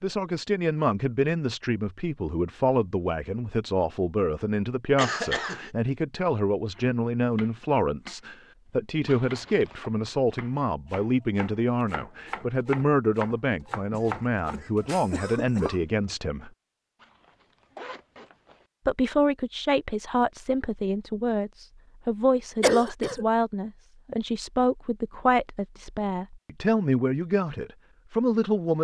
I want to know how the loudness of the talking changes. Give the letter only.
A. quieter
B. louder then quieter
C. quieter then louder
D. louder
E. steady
E.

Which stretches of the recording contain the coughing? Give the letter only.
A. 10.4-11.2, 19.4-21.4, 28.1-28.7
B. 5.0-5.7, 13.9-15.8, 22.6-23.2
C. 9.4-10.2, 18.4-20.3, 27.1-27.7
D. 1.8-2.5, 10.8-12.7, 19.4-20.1
B.